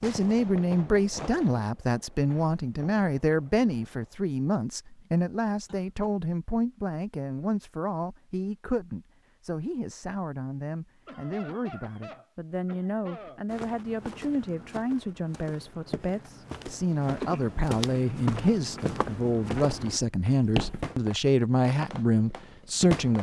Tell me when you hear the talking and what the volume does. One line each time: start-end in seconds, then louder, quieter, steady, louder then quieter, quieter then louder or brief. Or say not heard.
0.0-23.1 quieter then louder.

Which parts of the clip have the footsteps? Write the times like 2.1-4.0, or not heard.
13.4-20.9.